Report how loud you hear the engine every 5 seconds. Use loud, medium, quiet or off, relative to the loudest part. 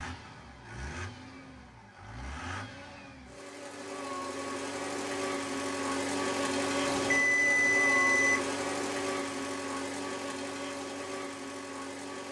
medium, loud, medium.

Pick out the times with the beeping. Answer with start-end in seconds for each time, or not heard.
6.8-8.4.